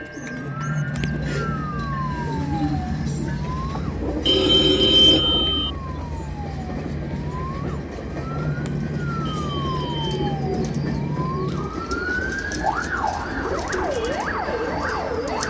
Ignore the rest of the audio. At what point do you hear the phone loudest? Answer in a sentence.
The volume of the phone peaks at 5 seconds.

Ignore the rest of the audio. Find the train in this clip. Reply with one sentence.
The train can be heard from 0.0 to 15.4 s.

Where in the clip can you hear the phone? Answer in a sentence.
You can hear the phone from 4.2 to 5.7 s and from 9.2 to 10.2 s.